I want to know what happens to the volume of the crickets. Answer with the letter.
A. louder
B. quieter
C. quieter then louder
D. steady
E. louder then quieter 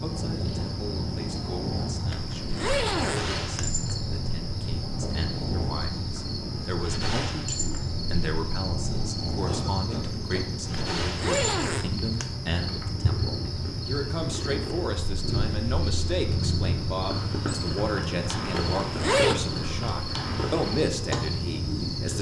D.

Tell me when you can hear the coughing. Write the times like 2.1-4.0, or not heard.
9.4-10.9.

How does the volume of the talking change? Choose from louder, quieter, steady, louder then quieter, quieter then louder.
louder.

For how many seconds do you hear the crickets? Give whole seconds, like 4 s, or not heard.
22 s.